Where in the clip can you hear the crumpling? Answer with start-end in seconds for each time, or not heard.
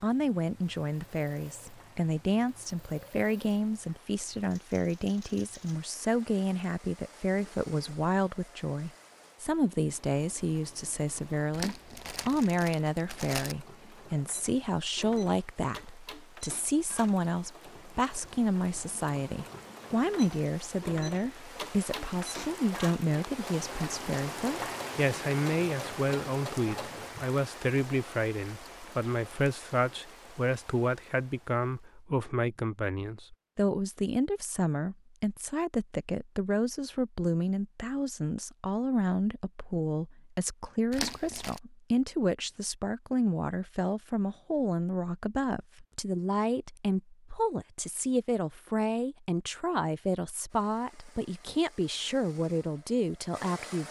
11.5-13.6, 40.9-41.6.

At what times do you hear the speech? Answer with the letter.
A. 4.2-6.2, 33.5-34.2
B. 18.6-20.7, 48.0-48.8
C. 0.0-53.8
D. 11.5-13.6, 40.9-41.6
C.